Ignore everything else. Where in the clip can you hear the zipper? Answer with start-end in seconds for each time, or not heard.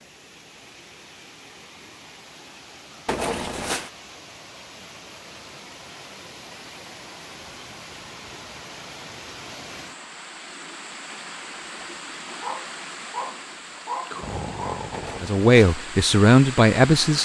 3.0-3.9, 14.9-15.8.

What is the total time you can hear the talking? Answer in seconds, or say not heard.
2 s.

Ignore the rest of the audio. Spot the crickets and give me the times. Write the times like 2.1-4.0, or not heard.
not heard.